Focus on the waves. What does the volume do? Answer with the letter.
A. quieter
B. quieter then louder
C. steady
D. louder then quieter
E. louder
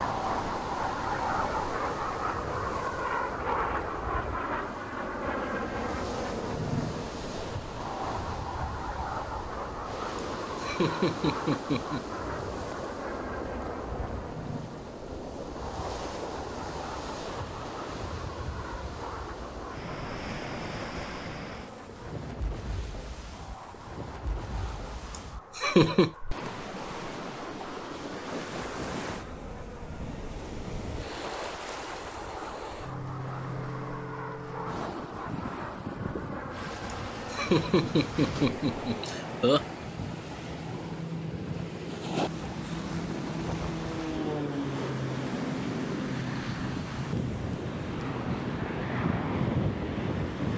C.